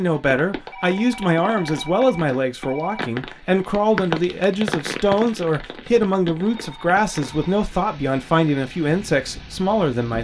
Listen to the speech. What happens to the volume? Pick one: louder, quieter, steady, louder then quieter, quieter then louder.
steady.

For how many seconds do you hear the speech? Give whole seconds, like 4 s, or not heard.
10 s.